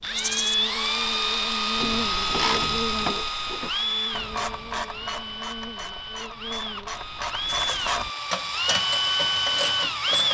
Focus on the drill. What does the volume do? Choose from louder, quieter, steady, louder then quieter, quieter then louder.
quieter then louder.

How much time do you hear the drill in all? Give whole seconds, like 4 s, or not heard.
10 s.